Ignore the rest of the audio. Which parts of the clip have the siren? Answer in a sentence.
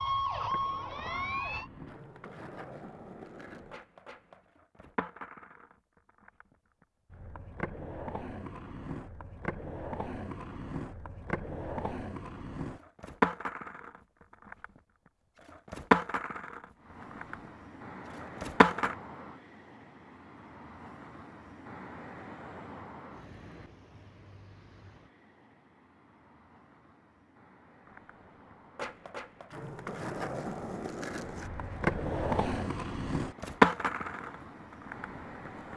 The siren can be heard from 0.0 to 1.7 s.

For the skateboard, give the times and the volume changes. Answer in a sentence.
The skateboard can be heard from 0.0 to 18.9 s, getting louder; and from 27.9 to 35.7 s, getting louder then quieter.